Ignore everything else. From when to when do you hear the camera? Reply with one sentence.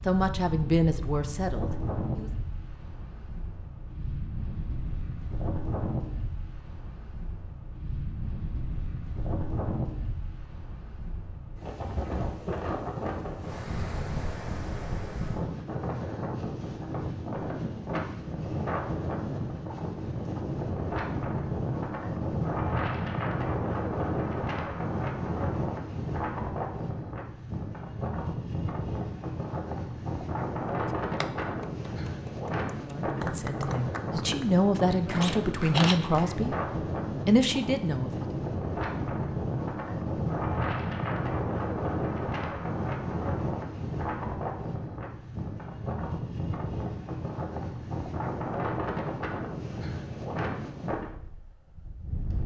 You can hear the camera from 35.2 to 36.1 s.